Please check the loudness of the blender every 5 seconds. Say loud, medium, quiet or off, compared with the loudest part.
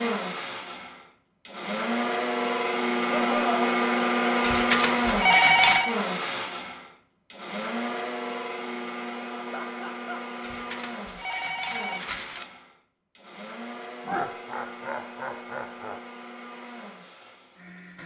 loud, medium, quiet, quiet.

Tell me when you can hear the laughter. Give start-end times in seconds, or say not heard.
3.0-3.6, 9.5-10.2, 14.1-16.0.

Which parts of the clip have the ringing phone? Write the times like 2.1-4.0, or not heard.
4.4-6.0, 10.4-12.4.